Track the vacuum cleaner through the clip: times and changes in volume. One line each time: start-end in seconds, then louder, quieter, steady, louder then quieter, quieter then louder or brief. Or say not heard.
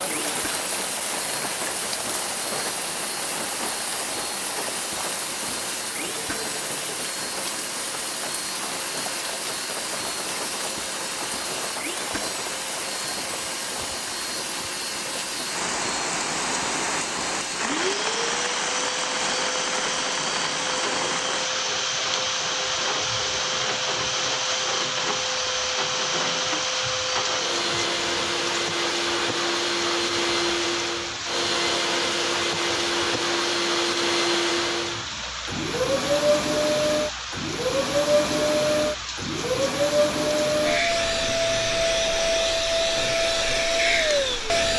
0.2-44.7 louder.